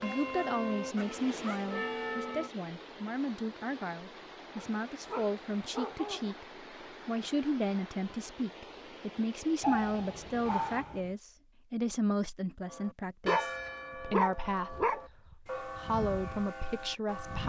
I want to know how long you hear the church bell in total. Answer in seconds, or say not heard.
7 s.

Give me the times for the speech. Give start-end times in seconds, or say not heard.
0.0-17.4.